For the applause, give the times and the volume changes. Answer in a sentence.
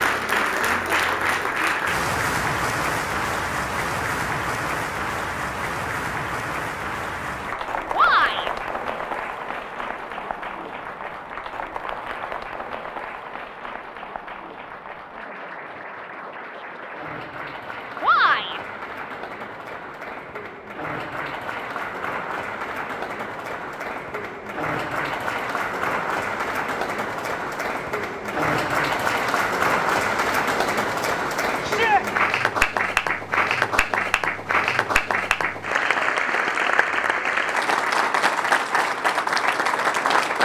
You can hear the applause from 0.0 to 40.3 s, getting quieter then louder.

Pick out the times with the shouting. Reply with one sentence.
You can hear the shouting from 7.9 to 8.5 s, from 18.0 to 18.6 s and from 31.6 to 32.0 s.